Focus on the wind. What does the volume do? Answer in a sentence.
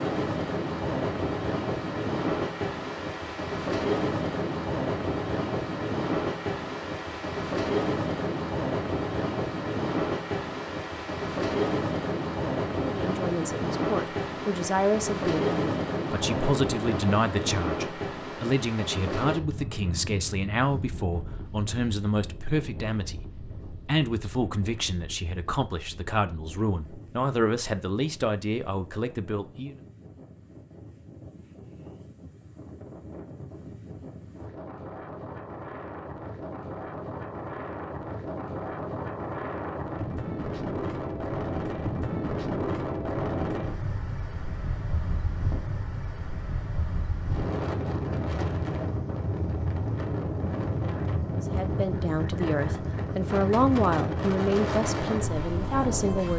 The loudness of the wind goes down, then up.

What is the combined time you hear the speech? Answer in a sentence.
You can hear the speech for 22 seconds altogether.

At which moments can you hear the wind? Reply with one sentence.
You can hear the wind from 0.0 to 56.3 s.